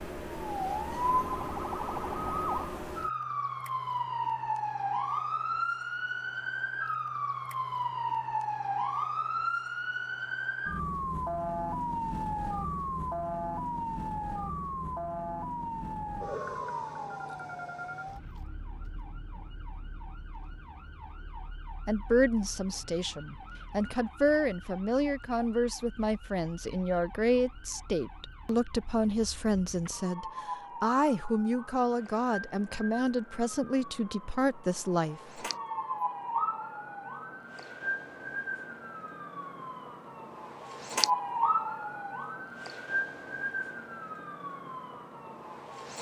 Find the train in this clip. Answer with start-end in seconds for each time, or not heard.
not heard.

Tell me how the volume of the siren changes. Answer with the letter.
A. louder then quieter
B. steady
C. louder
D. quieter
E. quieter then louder
E.